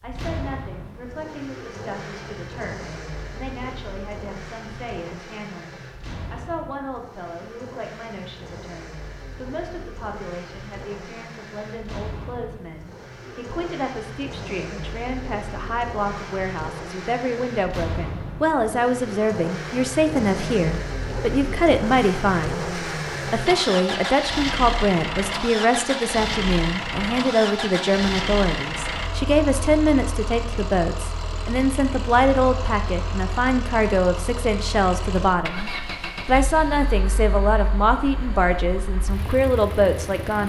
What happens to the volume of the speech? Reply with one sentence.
The volume of the speech goes up.